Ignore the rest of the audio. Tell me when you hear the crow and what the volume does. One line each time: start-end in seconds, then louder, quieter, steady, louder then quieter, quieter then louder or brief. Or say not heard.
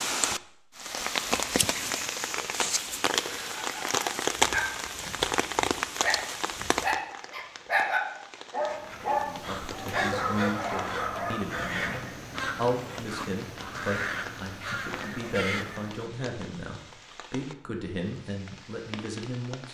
8.7-16.0 steady.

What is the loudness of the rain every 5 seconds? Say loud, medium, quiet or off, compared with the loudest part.
loud, medium, quiet, quiet.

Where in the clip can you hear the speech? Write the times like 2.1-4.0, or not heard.
9.2-19.7.